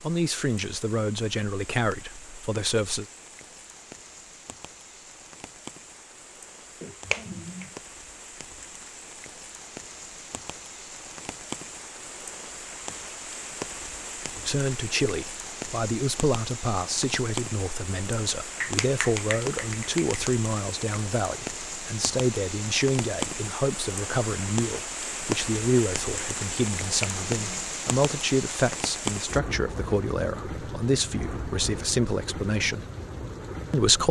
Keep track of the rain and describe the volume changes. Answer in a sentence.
The loudness of the rain goes up.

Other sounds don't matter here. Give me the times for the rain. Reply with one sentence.
The rain can be heard from 0.0 to 34.0 s.